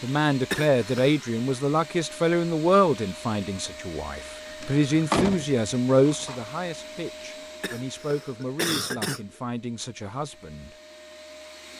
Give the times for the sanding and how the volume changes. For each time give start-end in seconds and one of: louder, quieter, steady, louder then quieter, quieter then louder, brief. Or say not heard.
not heard.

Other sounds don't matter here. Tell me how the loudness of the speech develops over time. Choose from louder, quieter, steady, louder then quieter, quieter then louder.
quieter.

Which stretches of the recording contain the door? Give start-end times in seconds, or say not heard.
4.6-6.5.